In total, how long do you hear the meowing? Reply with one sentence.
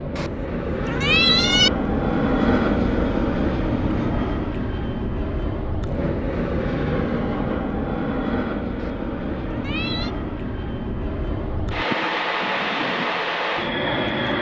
You can hear the meowing for 3 seconds altogether.